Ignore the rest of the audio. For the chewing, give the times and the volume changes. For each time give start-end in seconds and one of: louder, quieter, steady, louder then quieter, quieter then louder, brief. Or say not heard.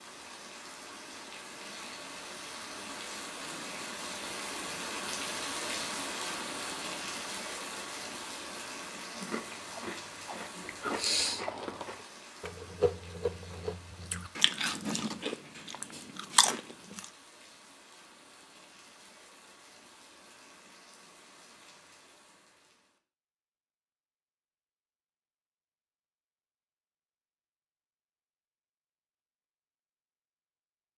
9.1-17.1 louder.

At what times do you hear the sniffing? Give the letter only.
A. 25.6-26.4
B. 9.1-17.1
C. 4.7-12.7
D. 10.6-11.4
D.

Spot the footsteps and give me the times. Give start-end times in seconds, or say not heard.
not heard.